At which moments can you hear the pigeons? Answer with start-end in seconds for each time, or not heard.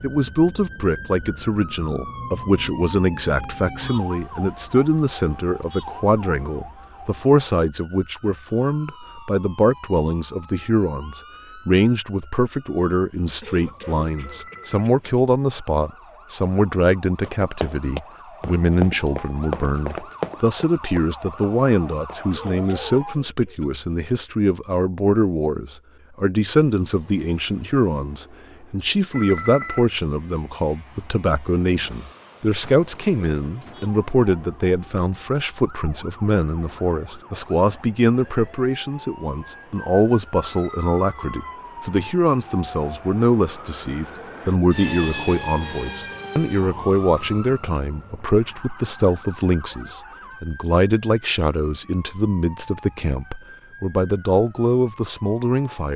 not heard.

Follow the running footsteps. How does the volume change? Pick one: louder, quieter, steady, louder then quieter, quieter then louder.
quieter.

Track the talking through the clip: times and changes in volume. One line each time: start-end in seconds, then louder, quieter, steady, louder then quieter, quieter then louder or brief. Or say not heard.
0.0-55.9 steady.